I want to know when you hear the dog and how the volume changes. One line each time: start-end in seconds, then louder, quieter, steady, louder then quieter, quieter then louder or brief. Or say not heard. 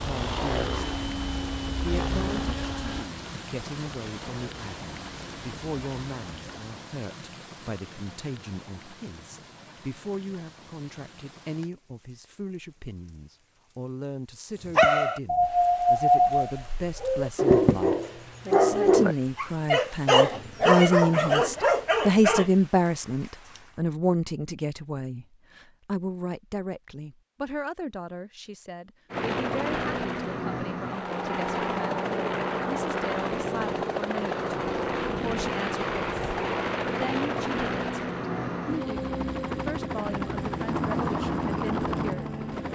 14.7-22.4 steady.